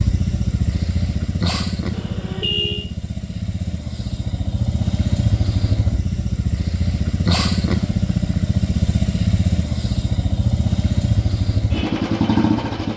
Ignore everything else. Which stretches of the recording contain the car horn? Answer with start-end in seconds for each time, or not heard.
1.9-2.9.